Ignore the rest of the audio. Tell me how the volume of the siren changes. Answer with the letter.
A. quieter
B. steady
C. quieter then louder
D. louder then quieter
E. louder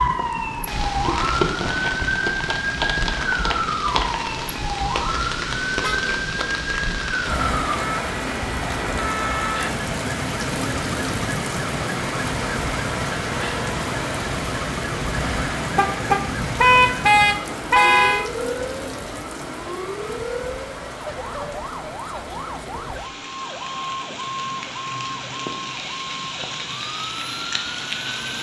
A.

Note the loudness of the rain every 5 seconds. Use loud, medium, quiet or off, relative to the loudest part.
loud, loud, loud, loud, medium, loud.